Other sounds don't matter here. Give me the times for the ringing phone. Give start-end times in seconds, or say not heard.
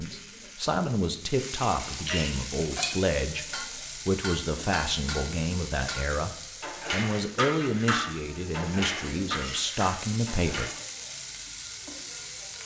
not heard.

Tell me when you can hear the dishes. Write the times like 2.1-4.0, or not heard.
2.5-10.8.